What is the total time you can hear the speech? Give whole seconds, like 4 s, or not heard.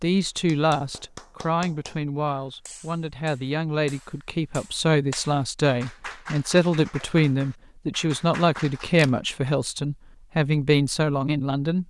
12 s.